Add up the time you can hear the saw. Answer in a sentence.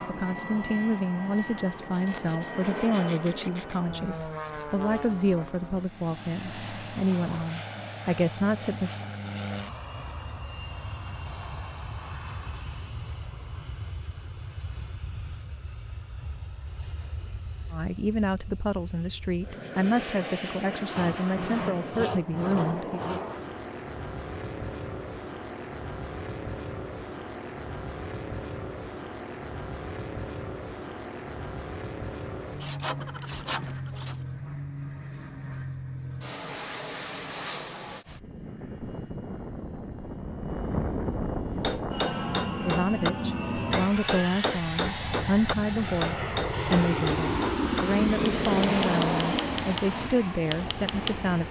You can hear the saw for 8 seconds altogether.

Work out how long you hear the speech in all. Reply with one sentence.
You can hear the speech for 23 seconds altogether.